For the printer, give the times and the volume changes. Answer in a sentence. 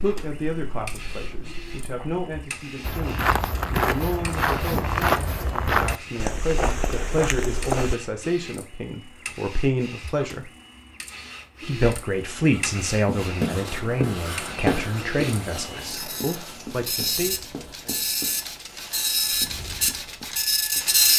The printer can be heard from 0.0 to 21.1 s, getting louder.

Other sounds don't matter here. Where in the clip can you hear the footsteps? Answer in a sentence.
The footsteps can be heard from 2.8 to 8.0 s.